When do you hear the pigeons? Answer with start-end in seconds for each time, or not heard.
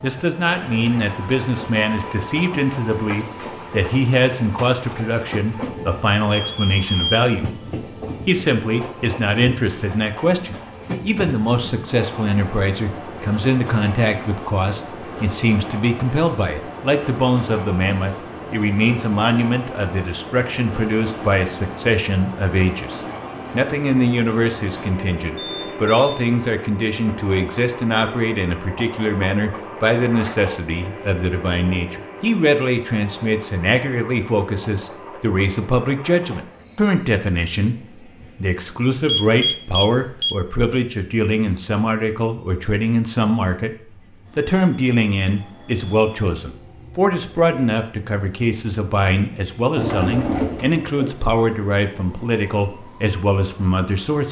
49.8-51.2.